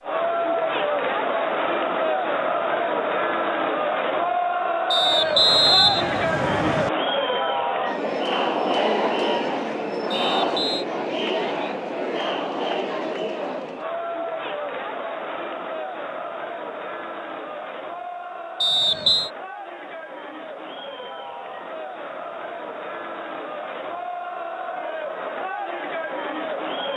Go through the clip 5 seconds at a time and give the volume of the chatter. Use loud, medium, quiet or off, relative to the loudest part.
loud, loud, loud, medium, medium, medium.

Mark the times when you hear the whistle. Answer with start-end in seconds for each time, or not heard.
4.9-6.9, 10.1-10.8, 18.6-19.3.